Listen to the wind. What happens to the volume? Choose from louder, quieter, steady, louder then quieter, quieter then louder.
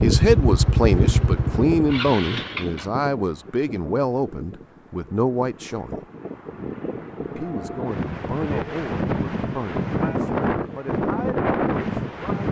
quieter then louder.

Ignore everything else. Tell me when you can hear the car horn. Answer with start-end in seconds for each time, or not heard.
not heard.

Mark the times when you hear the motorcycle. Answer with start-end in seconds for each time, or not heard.
0.0-2.9.